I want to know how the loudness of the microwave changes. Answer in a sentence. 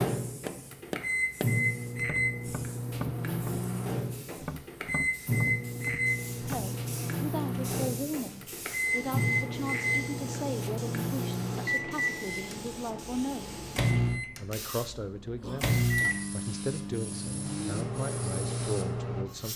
The volume of the microwave stays about the same.